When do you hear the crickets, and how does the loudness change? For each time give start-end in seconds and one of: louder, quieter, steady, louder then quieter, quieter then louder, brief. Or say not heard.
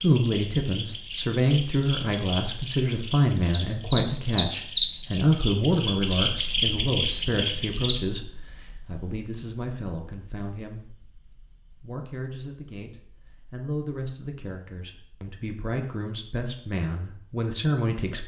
0.0-18.2 louder then quieter.